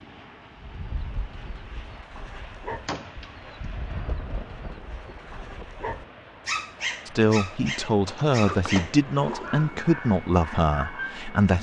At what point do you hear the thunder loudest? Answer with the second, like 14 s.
4 s.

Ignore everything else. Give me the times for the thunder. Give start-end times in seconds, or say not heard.
4.0-5.7.